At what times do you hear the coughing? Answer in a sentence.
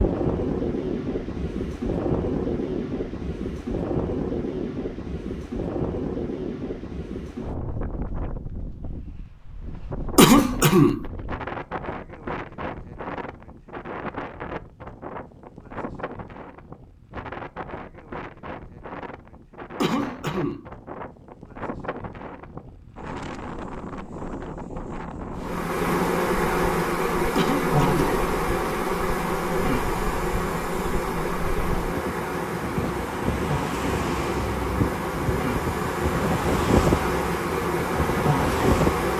The coughing can be heard from 10.2 to 11.1 s, from 19.8 to 20.6 s and from 27.4 to 28.2 s.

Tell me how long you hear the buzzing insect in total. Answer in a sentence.
You can hear the buzzing insect for 14 seconds altogether.